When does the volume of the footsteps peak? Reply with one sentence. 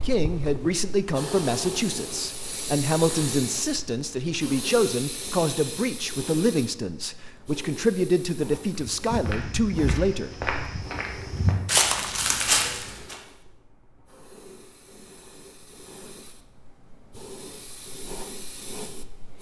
The loudest moment of the footsteps is at 12 seconds.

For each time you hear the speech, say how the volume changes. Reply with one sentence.
The speech can be heard from 0.0 to 10.4 s, at a steady volume.